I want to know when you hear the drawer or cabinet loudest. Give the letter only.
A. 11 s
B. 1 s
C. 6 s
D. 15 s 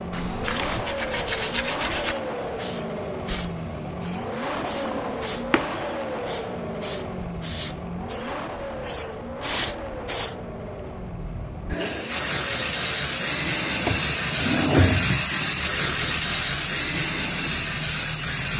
D.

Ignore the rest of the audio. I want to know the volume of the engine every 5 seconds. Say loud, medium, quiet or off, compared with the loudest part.
loud, loud, medium, medium.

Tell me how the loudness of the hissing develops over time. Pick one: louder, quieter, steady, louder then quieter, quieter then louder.
louder.